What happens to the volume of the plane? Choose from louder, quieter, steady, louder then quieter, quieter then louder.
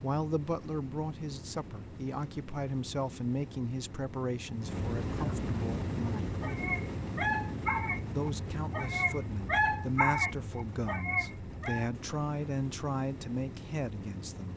louder then quieter.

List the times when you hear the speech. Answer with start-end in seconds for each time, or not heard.
0.0-6.3, 8.2-14.5.